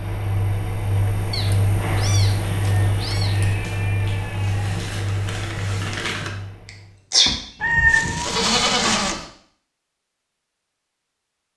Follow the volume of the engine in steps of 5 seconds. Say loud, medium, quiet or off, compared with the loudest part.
loud, medium, off.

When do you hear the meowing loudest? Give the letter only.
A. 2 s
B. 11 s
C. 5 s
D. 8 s
D.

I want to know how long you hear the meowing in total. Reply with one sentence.
You can hear the meowing for 4 seconds altogether.